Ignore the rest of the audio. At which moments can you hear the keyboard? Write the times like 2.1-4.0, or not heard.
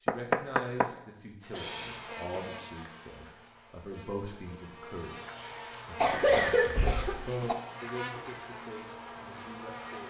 not heard.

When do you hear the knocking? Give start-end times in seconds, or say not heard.
0.1-0.9, 6.8-7.3.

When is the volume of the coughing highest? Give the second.
6 s.